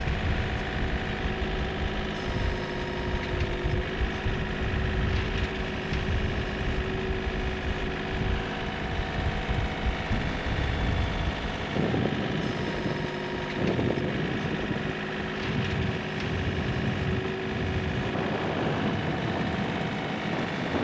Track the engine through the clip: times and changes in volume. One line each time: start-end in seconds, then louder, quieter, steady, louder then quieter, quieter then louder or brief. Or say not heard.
0.0-20.7 steady.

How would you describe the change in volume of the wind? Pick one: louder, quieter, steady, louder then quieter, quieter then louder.
louder.